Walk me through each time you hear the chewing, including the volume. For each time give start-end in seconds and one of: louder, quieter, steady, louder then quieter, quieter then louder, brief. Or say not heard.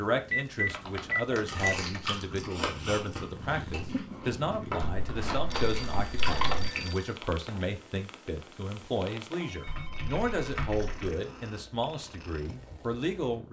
1.4-7.0 quieter then louder.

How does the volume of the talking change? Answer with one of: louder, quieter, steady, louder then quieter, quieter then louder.
steady.